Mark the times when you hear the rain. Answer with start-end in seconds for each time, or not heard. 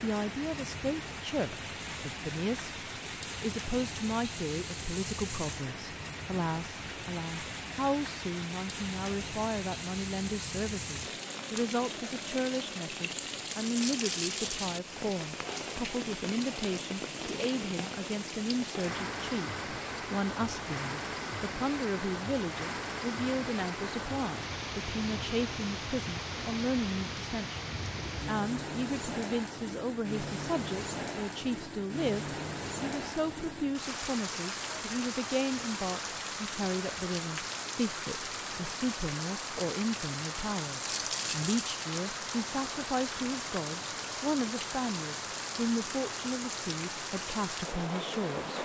0.0-48.5.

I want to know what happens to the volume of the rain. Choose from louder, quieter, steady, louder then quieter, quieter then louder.
steady.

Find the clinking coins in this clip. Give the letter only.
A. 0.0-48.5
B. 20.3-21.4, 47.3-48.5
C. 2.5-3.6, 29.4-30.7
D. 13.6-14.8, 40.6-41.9
D.